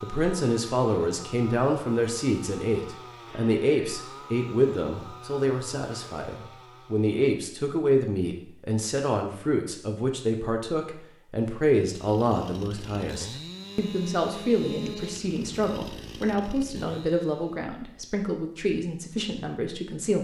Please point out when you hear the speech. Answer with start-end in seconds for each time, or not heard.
0.0-20.2.